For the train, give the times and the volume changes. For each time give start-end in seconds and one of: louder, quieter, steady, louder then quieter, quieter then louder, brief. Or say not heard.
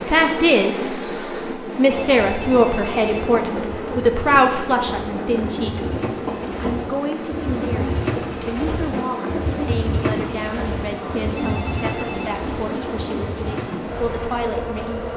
0.0-15.1 steady.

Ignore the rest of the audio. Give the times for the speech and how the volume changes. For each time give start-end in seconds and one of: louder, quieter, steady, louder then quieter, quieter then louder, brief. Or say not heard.
0.0-1.1 brief
1.8-15.1 quieter.